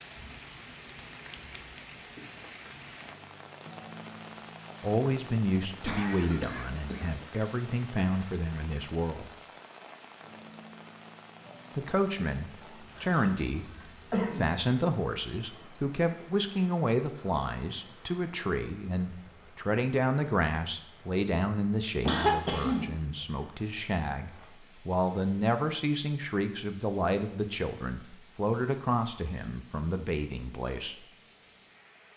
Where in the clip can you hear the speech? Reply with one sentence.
The speech can be heard from 4.8 to 9.3 s, from 11.8 to 13.7 s and from 14.3 to 30.9 s.